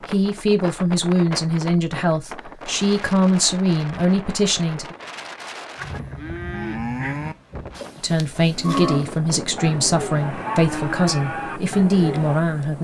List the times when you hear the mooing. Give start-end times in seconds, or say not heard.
5.8-12.4.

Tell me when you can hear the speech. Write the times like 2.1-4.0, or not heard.
0.1-5.0, 8.0-12.7.